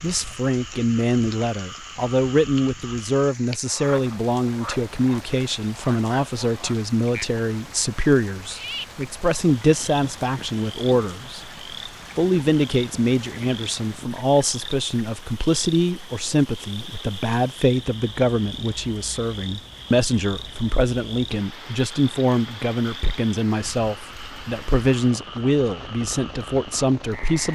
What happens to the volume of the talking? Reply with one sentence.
The volume of the talking stays about the same.